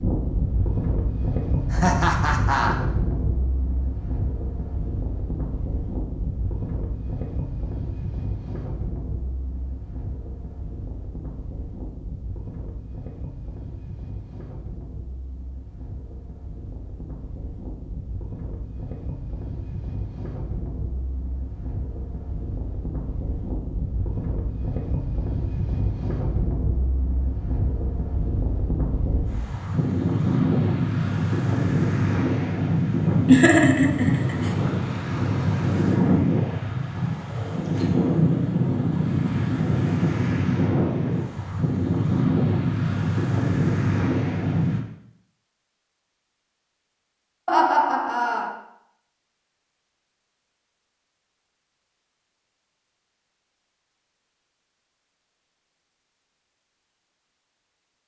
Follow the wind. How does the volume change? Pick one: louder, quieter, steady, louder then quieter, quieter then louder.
quieter then louder.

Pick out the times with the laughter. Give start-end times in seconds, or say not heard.
1.7-2.8, 33.2-34.5, 47.5-48.5.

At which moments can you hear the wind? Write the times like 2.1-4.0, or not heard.
0.0-44.8.